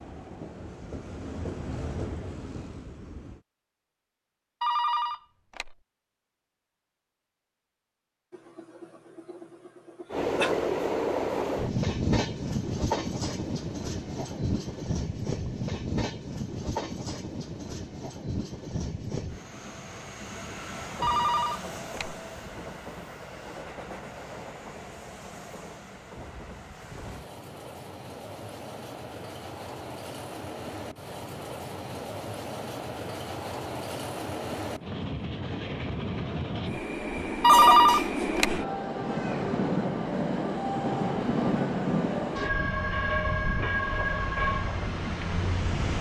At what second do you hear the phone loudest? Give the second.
38 s.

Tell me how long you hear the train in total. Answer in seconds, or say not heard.
39 s.